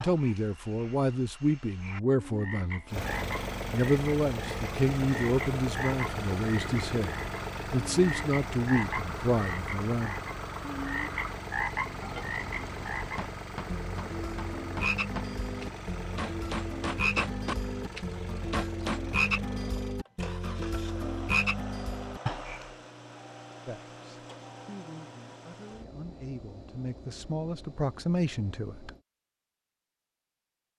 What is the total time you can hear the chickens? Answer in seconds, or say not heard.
not heard.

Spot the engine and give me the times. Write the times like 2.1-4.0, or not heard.
2.9-29.1.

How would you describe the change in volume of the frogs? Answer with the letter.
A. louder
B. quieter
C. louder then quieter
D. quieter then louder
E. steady
A.